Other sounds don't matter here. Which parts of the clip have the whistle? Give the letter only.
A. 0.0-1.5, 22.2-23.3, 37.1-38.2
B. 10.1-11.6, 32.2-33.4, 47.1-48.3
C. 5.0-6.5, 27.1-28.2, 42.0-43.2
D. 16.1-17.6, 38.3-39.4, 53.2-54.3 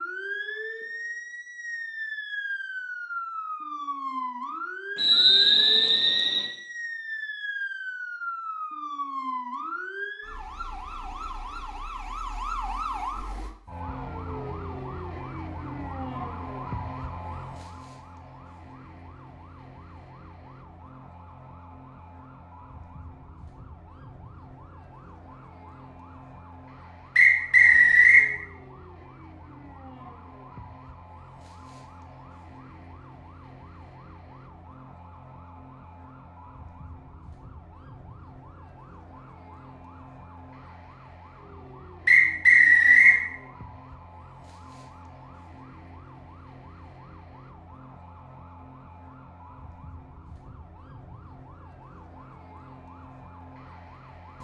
C.